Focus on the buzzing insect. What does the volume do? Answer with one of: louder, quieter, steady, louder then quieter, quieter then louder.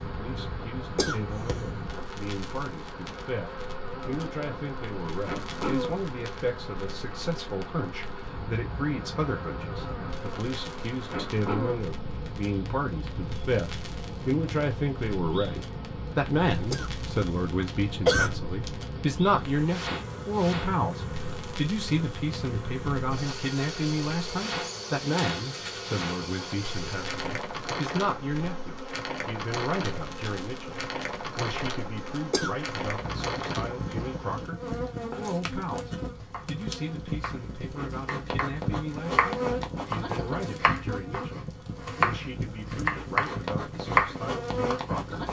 steady.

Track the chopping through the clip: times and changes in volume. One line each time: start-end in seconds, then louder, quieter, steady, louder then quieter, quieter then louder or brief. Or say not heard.
34.9-45.0 louder.